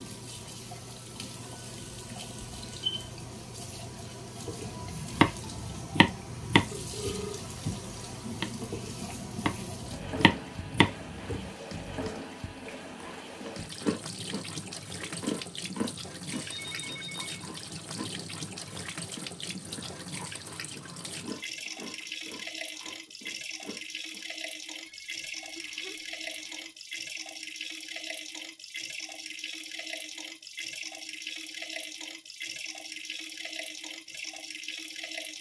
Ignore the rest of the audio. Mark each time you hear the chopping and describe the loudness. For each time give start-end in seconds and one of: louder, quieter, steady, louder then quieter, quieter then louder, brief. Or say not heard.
4.5-11.5 quieter then louder.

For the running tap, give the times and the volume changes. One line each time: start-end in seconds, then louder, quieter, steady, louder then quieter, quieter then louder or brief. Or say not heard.
0.0-35.3 steady.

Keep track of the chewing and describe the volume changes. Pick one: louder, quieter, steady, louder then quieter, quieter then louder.
quieter.